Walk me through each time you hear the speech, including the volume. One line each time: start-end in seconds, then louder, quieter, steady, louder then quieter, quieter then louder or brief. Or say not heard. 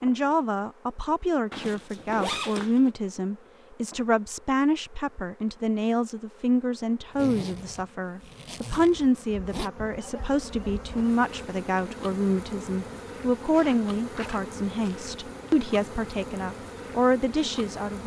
0.0-18.0 steady.